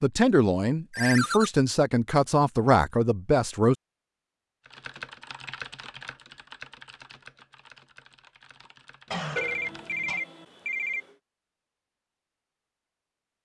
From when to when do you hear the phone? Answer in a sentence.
The phone can be heard from 0.9 to 1.5 s and from 9.3 to 11.1 s.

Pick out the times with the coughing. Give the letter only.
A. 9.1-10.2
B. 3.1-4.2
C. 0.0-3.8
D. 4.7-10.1
A.